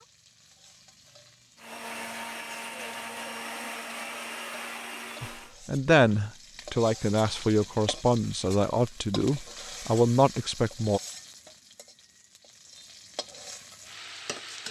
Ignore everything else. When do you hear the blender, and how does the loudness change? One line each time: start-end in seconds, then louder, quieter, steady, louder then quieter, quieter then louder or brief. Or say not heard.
1.6-5.5 steady.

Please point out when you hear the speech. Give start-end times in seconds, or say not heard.
5.2-11.0.